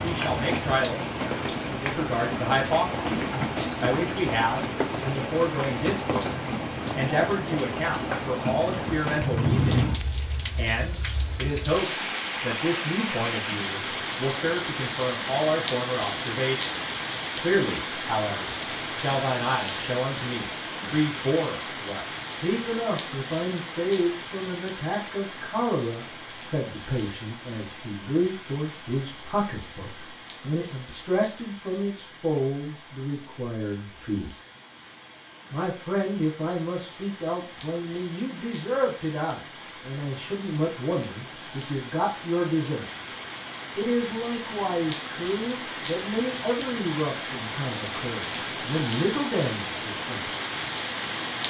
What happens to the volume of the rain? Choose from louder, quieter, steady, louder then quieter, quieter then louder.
quieter then louder.